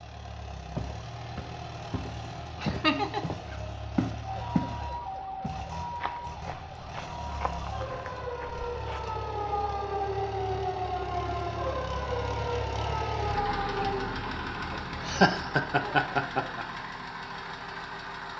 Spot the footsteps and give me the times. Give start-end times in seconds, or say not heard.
0.8-4.8, 5.4-9.2.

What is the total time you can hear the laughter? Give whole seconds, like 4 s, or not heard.
2 s.